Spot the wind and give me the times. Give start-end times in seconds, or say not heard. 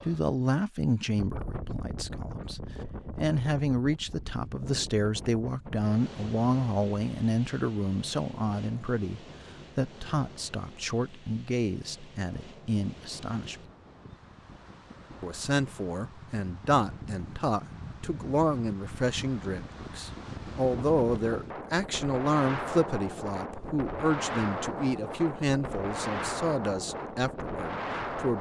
0.0-28.3.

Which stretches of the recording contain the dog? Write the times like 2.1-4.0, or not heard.
not heard.